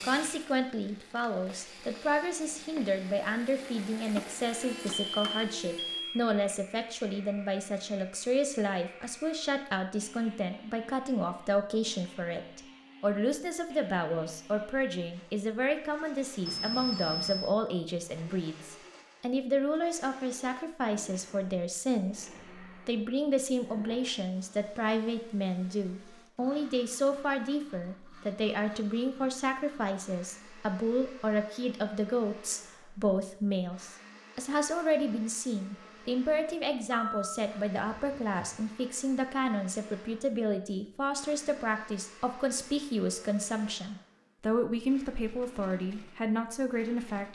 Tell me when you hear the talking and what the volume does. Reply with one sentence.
The talking can be heard from 0.0 to 47.2 s, at a steady volume.